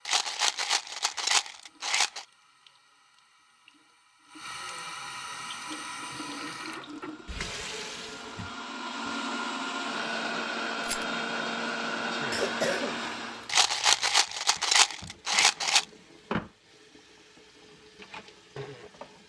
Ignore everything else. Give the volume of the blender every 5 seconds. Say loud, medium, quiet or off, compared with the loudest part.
off, medium, loud, off.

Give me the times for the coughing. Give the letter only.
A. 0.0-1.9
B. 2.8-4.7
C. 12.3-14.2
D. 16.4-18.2
C.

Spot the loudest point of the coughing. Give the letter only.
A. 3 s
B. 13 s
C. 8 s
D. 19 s
B.